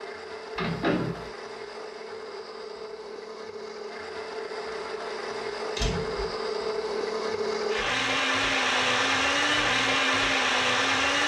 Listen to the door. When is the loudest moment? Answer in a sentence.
The loudest moment of the door is at 1 second.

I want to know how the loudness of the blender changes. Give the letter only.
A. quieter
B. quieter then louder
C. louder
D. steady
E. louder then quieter
C.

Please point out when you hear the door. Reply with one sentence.
The door can be heard from 0.6 to 1.3 s and from 5.8 to 6.3 s.